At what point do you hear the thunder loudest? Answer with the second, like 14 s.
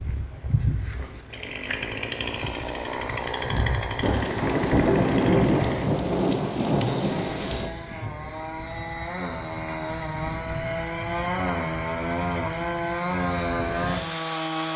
5 s.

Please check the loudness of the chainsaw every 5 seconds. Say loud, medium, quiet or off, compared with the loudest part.
loud, medium, loud.